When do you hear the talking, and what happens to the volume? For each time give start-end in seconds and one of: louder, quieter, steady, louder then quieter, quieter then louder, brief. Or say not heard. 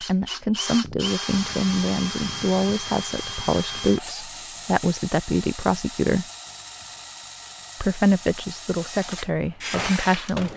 0.0-6.2 steady
7.8-10.5 brief.